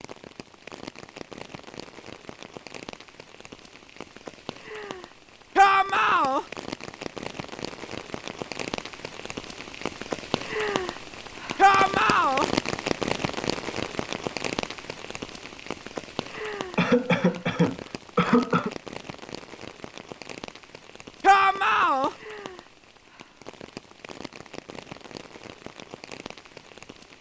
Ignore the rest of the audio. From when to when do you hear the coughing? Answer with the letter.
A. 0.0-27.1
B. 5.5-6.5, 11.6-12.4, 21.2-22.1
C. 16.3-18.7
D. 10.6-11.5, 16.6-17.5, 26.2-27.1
C.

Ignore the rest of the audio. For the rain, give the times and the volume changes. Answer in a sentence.
The rain can be heard from 0.0 to 27.1 s, getting louder then quieter.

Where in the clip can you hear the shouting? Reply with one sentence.
The shouting can be heard from 5.5 to 6.5 s, from 11.6 to 12.4 s and from 21.2 to 22.1 s.